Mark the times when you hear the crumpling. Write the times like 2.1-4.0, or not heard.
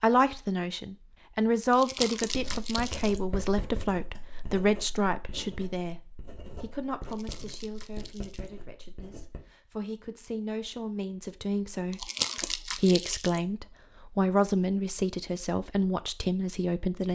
1.7-3.2, 7.0-8.5, 11.9-13.4.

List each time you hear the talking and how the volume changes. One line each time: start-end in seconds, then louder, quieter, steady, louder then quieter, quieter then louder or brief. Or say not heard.
0.0-17.1 quieter then louder.